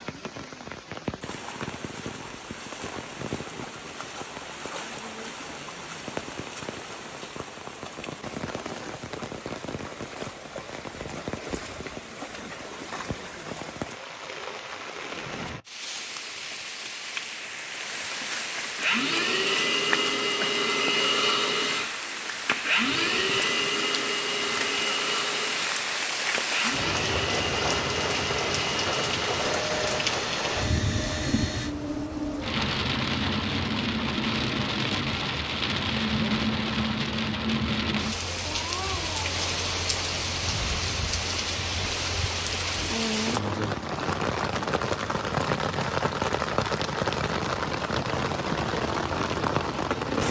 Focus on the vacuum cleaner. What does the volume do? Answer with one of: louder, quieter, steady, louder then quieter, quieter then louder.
quieter.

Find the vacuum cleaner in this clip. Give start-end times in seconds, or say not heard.
18.8-31.8.